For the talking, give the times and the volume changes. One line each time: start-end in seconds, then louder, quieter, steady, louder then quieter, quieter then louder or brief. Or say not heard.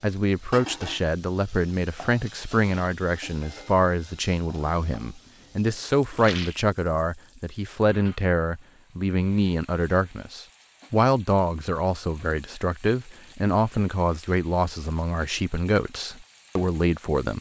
0.0-17.3 steady.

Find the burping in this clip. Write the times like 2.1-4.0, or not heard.
not heard.